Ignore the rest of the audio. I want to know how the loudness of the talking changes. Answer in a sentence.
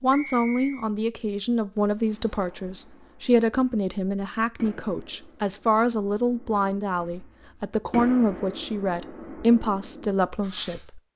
The volume of the talking stays about the same.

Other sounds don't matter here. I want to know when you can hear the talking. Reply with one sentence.
The talking can be heard from 0.0 to 11.0 s.